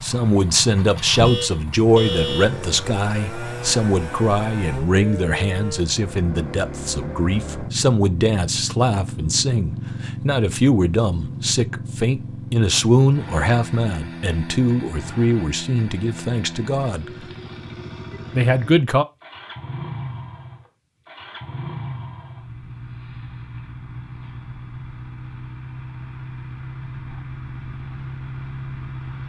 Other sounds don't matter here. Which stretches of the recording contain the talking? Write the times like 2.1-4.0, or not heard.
0.0-17.1, 18.4-19.1.